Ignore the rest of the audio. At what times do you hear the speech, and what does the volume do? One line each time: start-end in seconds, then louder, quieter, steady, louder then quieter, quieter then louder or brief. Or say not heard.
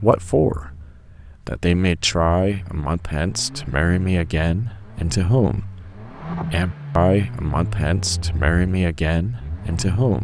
0.0-0.8 brief
1.4-10.1 steady.